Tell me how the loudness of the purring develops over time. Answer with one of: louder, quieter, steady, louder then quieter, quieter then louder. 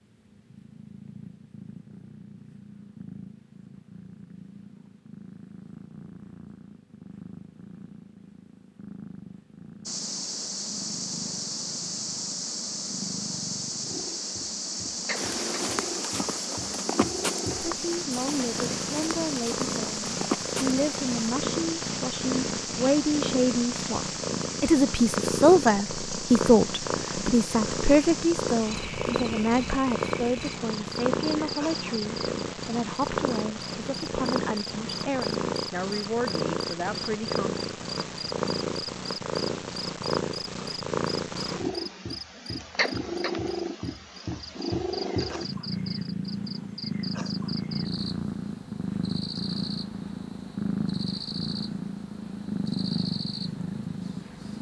louder.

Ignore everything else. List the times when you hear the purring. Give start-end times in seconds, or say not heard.
0.0-54.5.